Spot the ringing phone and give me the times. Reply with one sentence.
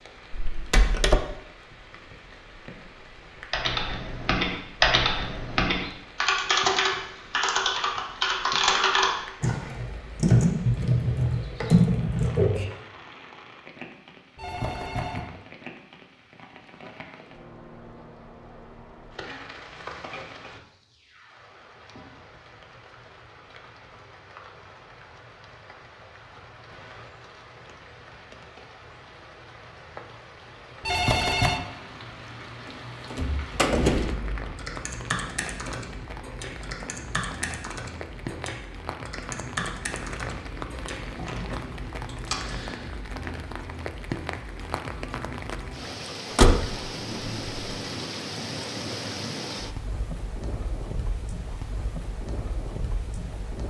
You can hear the ringing phone from 14.3 to 15.3 s and from 30.8 to 31.6 s.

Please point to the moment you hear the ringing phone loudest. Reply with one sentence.
The volume of the ringing phone peaks at 31 seconds.